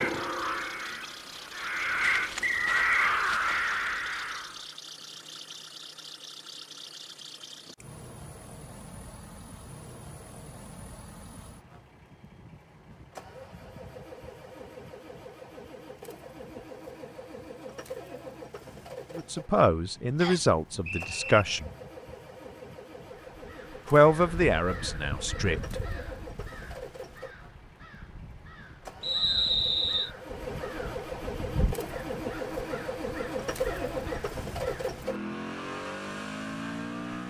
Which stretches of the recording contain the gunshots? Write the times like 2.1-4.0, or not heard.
not heard.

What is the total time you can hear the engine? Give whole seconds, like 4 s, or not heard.
37 s.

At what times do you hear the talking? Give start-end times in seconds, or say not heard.
19.1-21.7, 23.9-25.8.